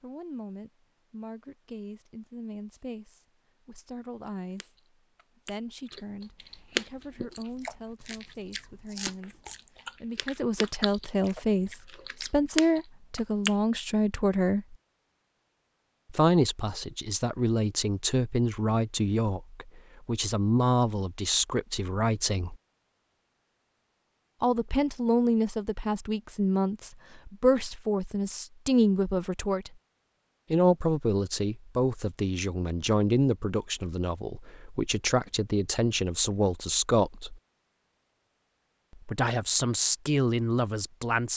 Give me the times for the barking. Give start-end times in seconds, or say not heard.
not heard.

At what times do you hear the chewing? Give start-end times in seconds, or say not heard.
4.2-13.6.